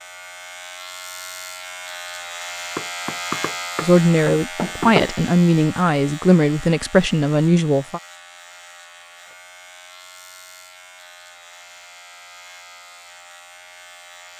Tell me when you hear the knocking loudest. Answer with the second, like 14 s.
5 s.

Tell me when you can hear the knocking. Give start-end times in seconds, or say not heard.
2.8-5.2.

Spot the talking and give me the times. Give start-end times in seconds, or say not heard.
3.8-8.0.